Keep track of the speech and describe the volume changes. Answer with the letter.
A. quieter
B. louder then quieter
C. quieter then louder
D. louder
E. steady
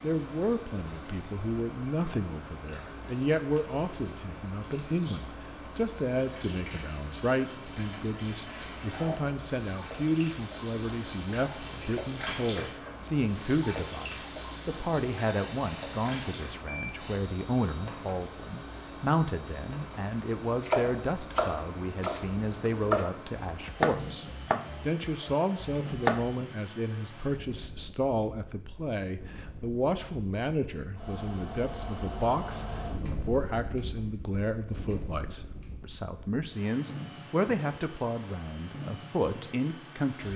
E.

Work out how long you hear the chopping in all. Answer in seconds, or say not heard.
6 s.